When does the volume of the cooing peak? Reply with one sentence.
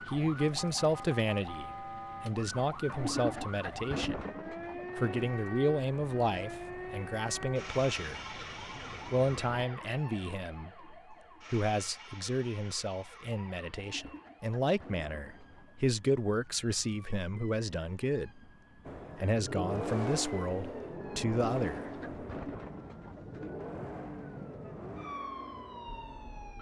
The volume of the cooing peaks at 3 seconds.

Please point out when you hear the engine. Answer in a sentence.
The engine can be heard from 4.8 to 9.7 s and from 18.9 to 26.5 s.